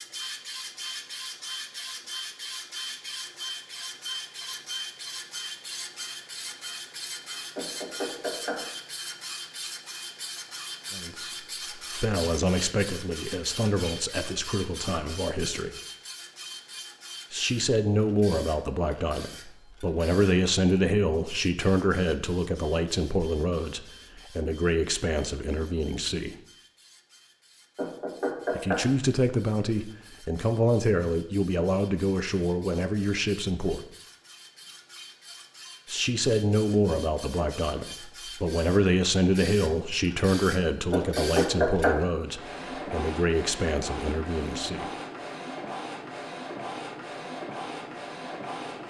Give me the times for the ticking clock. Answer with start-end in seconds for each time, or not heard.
not heard.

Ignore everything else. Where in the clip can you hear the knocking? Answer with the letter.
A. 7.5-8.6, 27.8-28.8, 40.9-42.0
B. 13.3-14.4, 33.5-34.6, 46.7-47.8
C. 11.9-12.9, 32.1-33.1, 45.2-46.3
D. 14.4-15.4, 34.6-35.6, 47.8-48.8
A.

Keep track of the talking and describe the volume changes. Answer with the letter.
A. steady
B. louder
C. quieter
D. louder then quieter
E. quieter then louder
A.